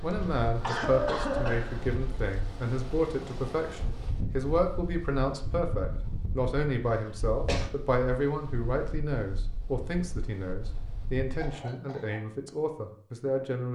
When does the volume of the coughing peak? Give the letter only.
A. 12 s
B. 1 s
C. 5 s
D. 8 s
B.